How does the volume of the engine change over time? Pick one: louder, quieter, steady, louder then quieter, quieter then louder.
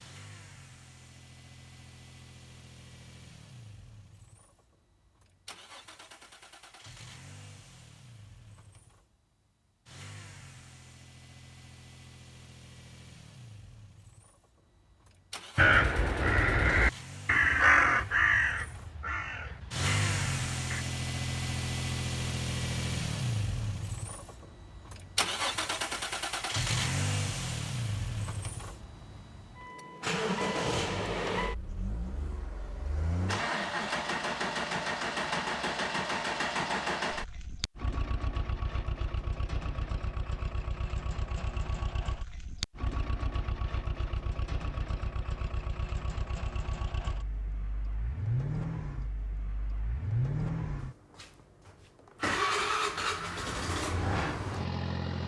louder.